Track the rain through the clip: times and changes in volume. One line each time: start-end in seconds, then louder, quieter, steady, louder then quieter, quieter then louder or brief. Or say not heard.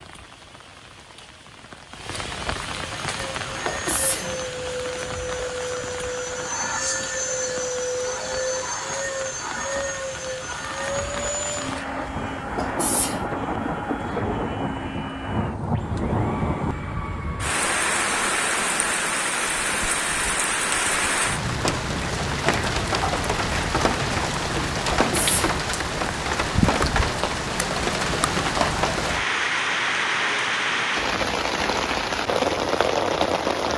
0.0-33.7 louder.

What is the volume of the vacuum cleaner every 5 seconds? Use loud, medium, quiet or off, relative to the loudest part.
medium, loud, loud, medium, off, off, off.